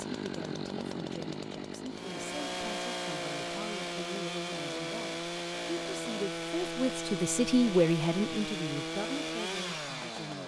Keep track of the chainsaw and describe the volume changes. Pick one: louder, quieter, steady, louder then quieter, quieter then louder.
steady.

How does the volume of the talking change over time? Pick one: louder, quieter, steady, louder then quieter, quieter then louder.
louder then quieter.